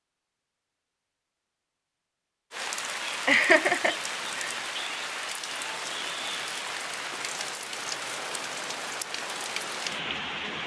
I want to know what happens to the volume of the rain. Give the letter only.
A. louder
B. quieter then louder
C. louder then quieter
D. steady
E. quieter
D.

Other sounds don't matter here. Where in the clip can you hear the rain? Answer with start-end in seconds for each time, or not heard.
2.5-10.6.